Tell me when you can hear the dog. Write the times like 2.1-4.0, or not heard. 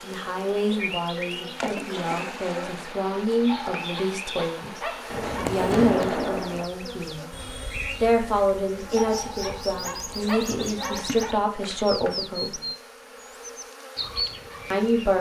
3.5-5.6, 8.9-11.4.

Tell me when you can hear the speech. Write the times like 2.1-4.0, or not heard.
0.0-7.3, 8.0-12.6, 14.7-15.1.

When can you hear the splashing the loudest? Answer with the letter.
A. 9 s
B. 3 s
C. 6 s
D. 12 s
C.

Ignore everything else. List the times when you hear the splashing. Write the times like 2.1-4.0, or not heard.
1.6-2.8, 5.1-6.7, 10.9-12.8.